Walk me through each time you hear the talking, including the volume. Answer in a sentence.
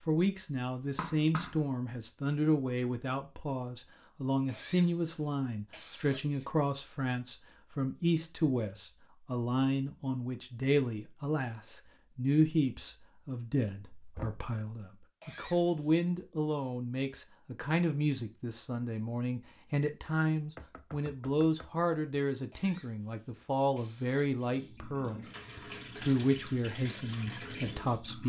The talking can be heard from 0.1 to 28.2 s, at a steady volume.